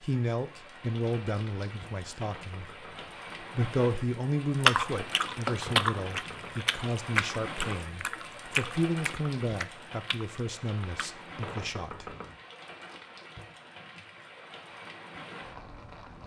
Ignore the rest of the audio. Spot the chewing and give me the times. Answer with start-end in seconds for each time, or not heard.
4.6-11.4.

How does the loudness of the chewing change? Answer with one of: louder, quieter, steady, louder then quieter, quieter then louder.
quieter.